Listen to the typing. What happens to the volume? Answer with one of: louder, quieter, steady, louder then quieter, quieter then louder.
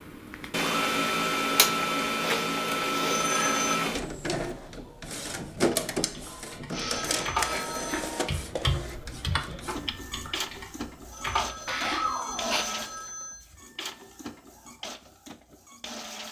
quieter.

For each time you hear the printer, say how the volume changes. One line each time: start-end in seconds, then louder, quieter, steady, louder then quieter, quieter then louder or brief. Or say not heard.
0.1-16.2 quieter.